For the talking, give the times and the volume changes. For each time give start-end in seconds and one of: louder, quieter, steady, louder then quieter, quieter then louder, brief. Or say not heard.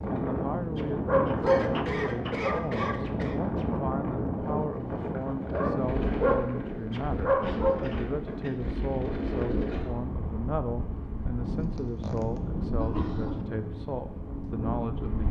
0.1-15.2 steady.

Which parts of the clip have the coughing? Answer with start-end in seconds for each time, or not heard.
1.4-3.4, 7.5-8.6, 11.6-13.4.